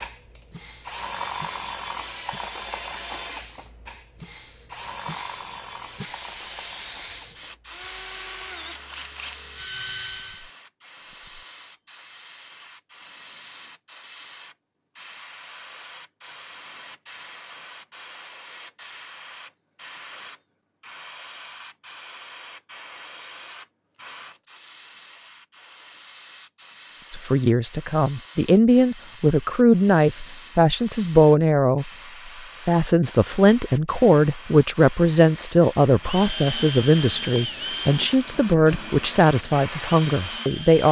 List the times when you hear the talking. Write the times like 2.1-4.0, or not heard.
27.1-31.9, 32.6-40.8.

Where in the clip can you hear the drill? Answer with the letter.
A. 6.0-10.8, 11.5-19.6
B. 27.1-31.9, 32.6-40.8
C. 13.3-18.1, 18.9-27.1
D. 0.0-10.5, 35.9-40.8
D.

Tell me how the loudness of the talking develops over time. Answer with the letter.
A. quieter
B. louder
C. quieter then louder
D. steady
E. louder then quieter
D.